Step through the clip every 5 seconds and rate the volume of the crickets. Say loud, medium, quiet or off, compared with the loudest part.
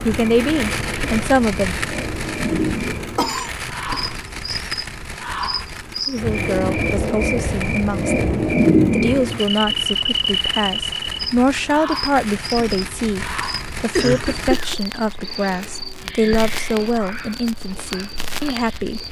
medium, loud, medium, quiet.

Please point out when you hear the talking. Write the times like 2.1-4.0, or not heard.
0.0-1.9, 6.0-19.0.